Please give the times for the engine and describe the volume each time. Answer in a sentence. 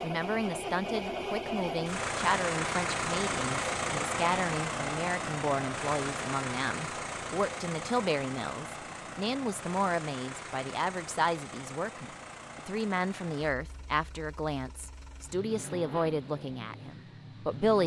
The engine can be heard from 0.0 to 17.8 s, getting quieter.